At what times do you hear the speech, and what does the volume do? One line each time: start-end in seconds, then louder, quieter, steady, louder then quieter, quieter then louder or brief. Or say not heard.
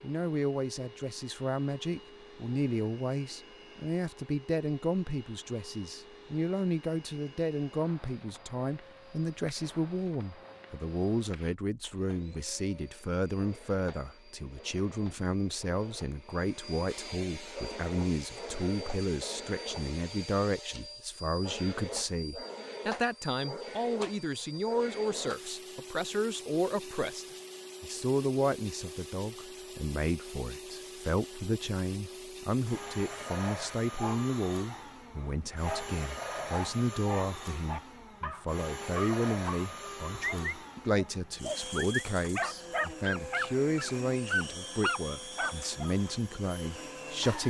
0.0-47.4 steady.